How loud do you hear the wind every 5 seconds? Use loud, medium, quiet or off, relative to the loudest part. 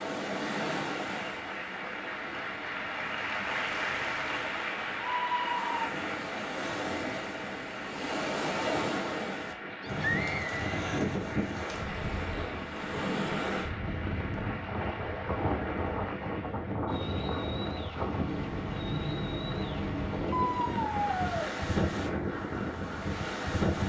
medium, loud, loud, loud, loud.